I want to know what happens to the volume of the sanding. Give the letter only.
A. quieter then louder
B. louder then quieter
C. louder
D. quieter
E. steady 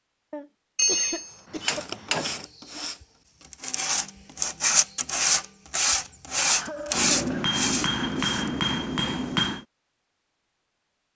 C.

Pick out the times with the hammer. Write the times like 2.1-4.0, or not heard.
0.8-2.5, 7.0-9.7.